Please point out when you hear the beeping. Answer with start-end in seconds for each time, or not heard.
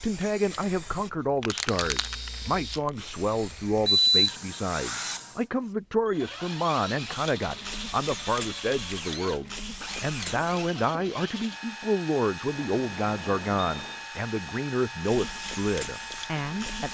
3.9-4.3, 12.5-14.1.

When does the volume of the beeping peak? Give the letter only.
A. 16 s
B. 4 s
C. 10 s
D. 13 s
B.